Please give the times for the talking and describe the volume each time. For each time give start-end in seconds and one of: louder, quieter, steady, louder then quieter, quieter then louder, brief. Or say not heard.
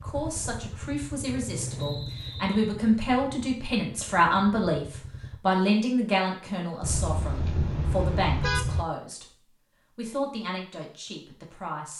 0.0-9.2 louder then quieter
9.9-11.9 brief.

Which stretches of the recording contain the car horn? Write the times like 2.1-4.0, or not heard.
0.1-0.7, 6.8-8.8.